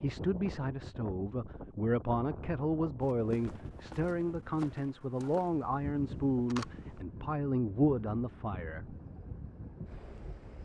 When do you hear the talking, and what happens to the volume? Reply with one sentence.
You can hear the talking from 0.0 to 8.9 s, at a steady volume.